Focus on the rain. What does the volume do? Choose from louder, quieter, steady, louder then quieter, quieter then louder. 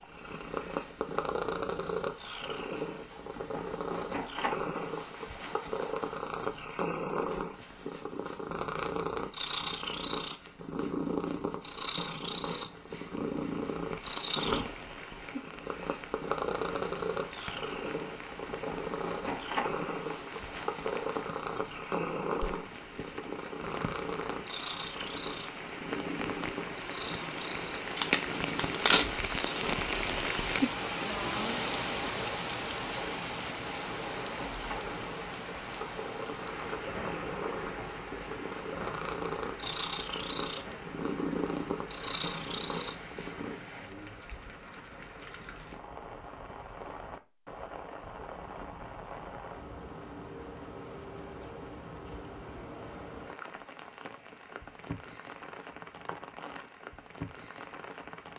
louder then quieter.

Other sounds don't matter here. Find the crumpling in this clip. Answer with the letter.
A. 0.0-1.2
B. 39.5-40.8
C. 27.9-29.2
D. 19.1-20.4
C.